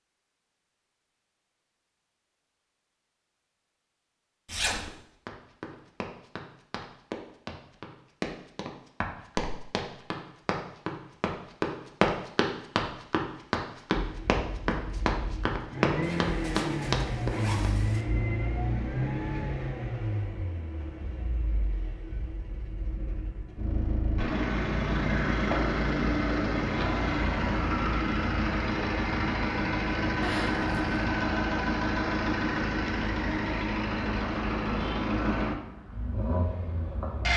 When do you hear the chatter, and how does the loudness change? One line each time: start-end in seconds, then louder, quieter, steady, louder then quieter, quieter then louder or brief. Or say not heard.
not heard.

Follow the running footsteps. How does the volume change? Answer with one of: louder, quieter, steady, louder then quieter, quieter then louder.
louder.